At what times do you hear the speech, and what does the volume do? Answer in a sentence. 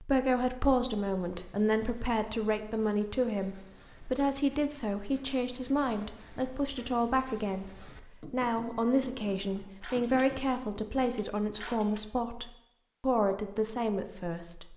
The speech can be heard from 0.0 to 14.7 s, at a steady volume.